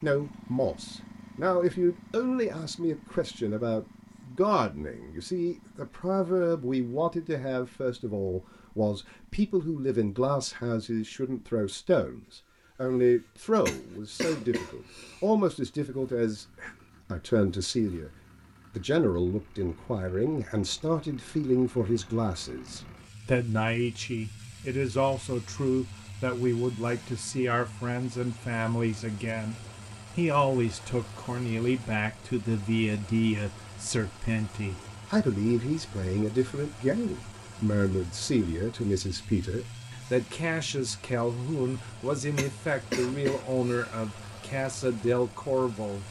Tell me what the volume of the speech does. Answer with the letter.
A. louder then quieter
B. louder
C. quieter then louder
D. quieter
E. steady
E.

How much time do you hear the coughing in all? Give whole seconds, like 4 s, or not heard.
3 s.